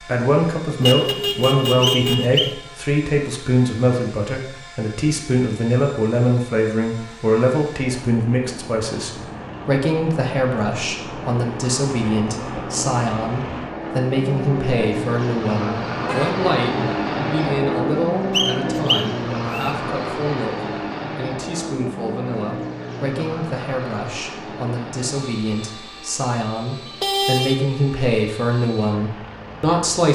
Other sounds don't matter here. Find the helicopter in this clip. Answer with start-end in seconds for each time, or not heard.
0.0-30.1.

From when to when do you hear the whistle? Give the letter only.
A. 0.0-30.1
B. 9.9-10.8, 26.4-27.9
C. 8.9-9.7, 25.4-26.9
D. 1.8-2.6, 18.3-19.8
D.